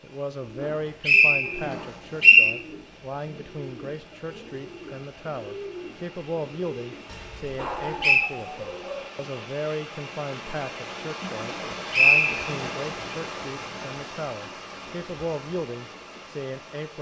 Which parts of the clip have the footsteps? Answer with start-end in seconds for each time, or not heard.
not heard.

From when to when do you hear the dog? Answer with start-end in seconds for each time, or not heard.
7.0-9.1.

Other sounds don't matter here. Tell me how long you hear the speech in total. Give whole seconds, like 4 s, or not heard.
17 s.